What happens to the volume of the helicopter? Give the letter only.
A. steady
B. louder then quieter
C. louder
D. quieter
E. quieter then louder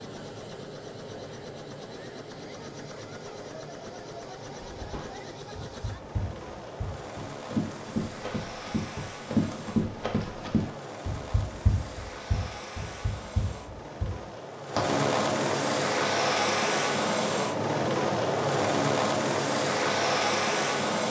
C.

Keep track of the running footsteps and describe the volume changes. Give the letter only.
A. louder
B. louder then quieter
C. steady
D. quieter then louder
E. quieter
B.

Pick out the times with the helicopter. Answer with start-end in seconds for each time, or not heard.
0.0-21.0.